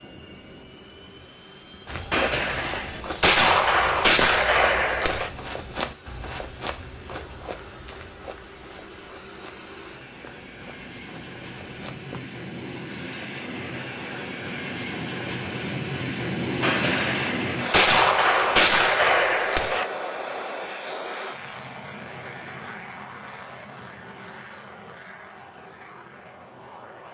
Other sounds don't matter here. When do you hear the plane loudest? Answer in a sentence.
The volume of the plane peaks at 17 seconds.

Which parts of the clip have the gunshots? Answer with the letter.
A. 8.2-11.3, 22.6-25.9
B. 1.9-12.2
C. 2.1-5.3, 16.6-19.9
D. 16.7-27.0
C.